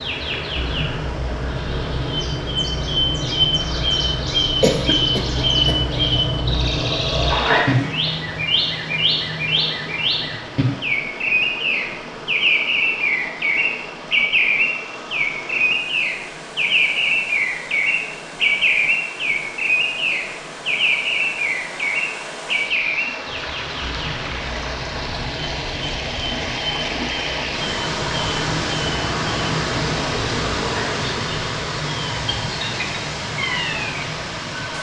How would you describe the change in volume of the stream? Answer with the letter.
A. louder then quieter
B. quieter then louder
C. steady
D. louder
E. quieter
D.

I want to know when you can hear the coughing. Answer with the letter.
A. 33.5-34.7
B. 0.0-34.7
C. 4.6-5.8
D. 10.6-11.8
C.